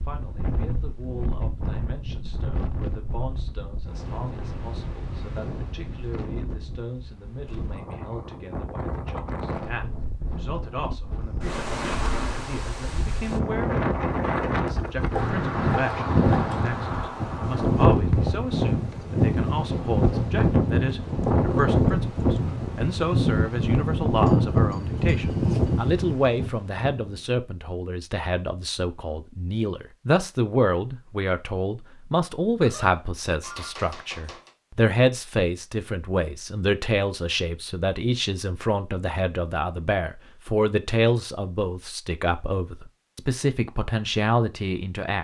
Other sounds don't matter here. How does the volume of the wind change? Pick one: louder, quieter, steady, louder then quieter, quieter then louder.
louder.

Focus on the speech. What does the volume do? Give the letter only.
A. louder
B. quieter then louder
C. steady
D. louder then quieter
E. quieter
A.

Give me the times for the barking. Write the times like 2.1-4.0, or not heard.
not heard.